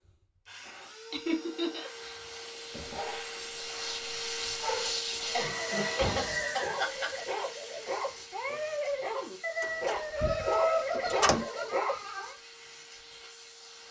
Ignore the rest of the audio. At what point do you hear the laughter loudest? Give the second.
11 s.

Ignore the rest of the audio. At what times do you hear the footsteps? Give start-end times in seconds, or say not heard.
not heard.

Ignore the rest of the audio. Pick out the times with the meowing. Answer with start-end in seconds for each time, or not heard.
not heard.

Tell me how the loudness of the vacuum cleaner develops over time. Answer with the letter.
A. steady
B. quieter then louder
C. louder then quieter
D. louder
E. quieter
C.